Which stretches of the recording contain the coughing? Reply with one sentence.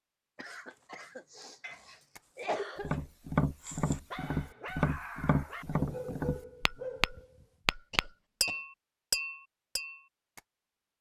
The coughing can be heard from 0.3 to 3.0 s and from 7.7 to 8.6 s.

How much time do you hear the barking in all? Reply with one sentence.
You can hear the barking for 7 seconds altogether.